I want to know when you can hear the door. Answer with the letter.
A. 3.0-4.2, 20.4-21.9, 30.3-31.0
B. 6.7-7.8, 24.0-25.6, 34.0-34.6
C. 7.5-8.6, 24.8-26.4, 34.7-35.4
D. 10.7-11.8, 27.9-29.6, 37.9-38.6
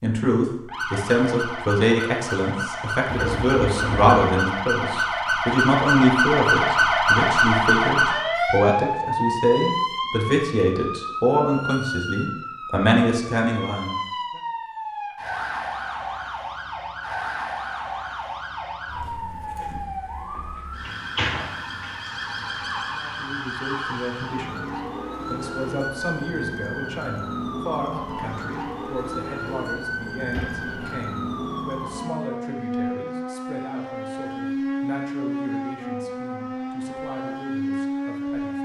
A.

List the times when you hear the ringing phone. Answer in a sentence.
The ringing phone can't be heard in this clip.